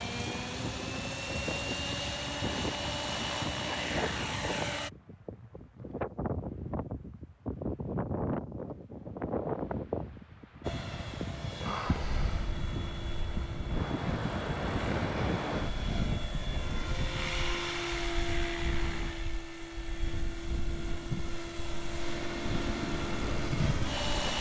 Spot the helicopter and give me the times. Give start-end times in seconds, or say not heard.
0.0-4.9, 10.7-24.3.